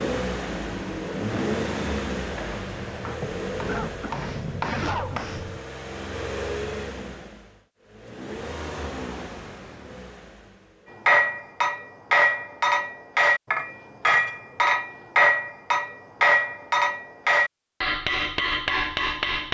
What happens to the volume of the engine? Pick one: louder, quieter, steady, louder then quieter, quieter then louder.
quieter.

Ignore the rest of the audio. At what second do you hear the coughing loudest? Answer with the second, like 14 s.
5 s.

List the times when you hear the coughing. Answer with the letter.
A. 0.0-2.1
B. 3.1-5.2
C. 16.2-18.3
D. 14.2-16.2
B.